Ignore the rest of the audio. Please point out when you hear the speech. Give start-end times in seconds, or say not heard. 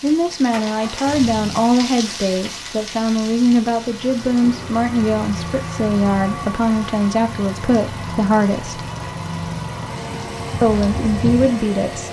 0.0-8.8, 10.6-12.0.